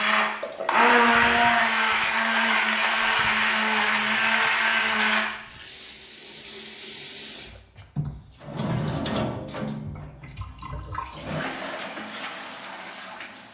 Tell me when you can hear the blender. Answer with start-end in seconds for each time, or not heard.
0.0-5.3.